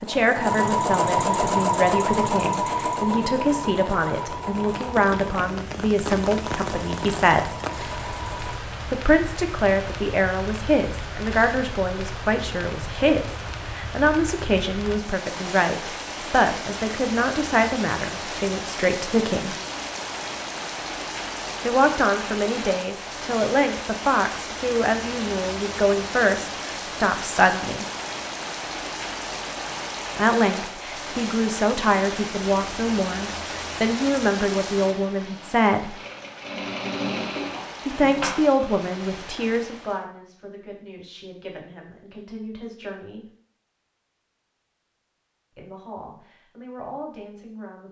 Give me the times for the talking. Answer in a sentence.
You can hear the talking from 0.0 to 7.5 s, from 8.9 to 19.6 s, from 21.6 to 27.9 s, from 30.1 to 36.0 s, from 37.9 to 43.2 s and from 45.5 to 47.8 s.